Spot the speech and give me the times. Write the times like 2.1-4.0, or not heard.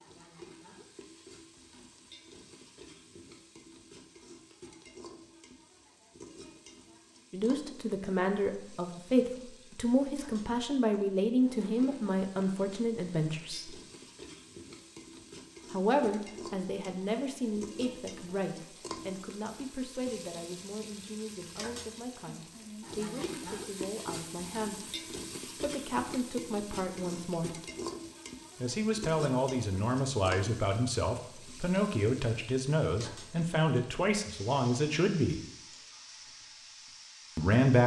7.3-13.8, 15.7-27.6, 28.6-35.4, 37.4-37.8.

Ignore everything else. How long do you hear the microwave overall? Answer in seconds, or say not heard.
not heard.